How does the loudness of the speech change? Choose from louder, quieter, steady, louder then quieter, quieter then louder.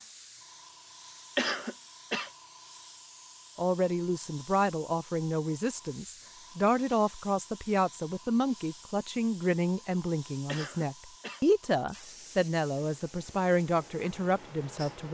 steady.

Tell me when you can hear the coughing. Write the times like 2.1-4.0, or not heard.
1.4-2.3, 10.4-11.4.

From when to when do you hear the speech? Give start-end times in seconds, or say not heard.
3.5-15.0.